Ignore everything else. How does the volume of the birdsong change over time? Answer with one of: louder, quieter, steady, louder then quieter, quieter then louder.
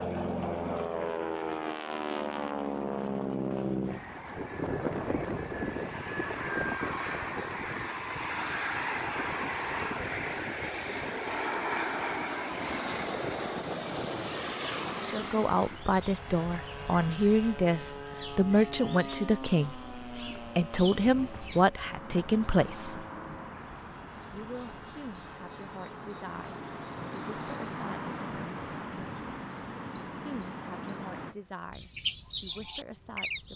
louder.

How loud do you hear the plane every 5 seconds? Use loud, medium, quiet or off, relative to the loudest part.
loud, loud, loud, medium, quiet, quiet, quiet.